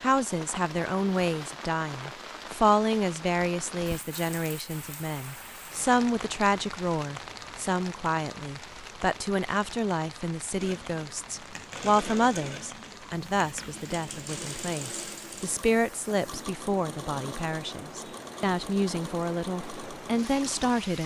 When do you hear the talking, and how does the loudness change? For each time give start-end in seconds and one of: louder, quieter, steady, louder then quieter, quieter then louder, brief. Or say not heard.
0.0-21.0 steady.